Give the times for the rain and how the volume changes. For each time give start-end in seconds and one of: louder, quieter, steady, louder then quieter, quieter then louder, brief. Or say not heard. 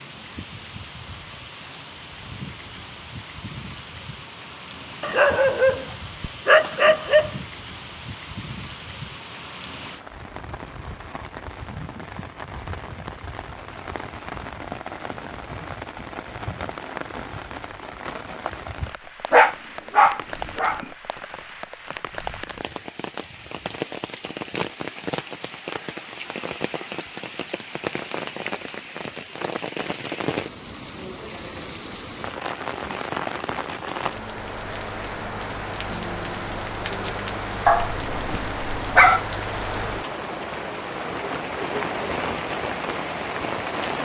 0.0-43.9 louder.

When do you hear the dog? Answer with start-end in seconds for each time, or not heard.
5.0-7.3, 19.3-20.9, 37.6-39.2.